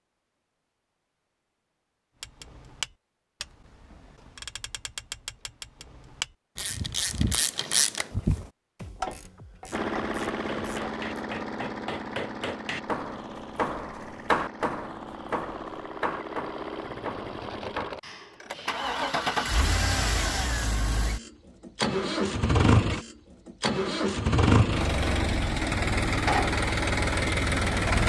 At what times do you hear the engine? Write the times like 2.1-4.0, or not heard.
9.7-28.0.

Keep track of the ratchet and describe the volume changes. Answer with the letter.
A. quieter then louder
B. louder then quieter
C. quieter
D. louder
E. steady
B.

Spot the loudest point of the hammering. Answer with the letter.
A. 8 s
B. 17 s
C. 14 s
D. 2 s
C.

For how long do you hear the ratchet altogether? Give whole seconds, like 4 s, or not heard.
9 s.